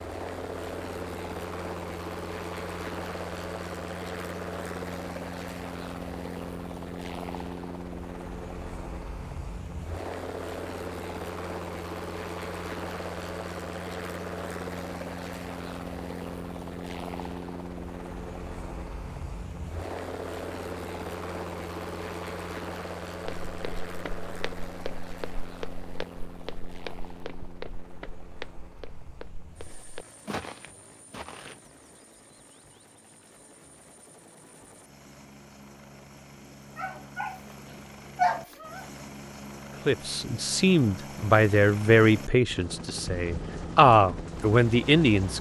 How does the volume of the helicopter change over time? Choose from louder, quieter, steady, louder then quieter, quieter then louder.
quieter then louder.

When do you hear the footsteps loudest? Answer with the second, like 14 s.
30 s.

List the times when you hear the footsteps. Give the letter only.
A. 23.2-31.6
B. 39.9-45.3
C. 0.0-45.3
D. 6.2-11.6
A.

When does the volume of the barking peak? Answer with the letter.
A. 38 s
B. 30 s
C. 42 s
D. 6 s
A.